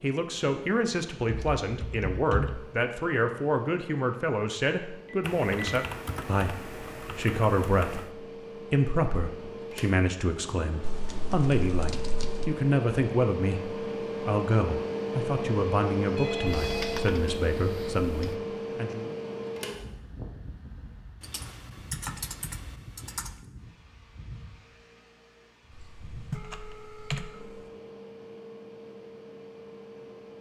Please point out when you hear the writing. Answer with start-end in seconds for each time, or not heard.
not heard.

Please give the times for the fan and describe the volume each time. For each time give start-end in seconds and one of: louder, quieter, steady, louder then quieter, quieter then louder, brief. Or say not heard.
0.1-30.3 louder then quieter.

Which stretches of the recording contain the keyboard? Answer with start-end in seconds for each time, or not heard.
1.2-2.6, 5.2-8.1, 10.8-12.5, 16.4-18.4, 21.2-23.3, 26.3-27.3.